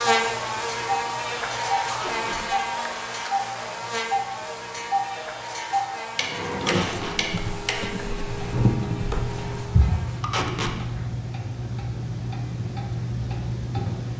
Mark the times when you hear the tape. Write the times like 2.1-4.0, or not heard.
1.9-2.4, 6.7-7.2, 10.2-10.8.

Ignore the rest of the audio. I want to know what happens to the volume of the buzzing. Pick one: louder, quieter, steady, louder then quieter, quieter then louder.
quieter.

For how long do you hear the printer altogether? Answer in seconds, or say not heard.
4 s.